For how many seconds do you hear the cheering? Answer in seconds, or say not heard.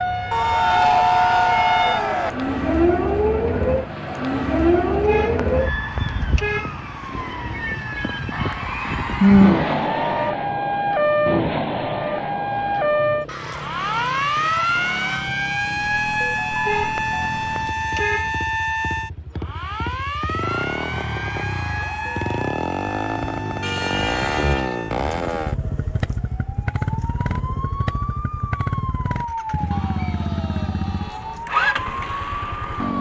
10 s.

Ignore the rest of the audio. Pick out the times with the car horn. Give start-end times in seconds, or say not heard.
5.0-6.8, 16.6-18.4, 23.6-24.8.